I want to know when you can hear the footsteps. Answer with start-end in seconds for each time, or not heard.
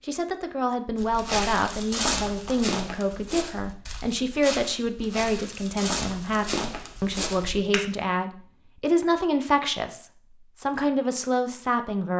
0.9-7.8.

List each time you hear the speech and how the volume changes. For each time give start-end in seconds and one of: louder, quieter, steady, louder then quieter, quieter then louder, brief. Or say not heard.
0.0-12.1 steady.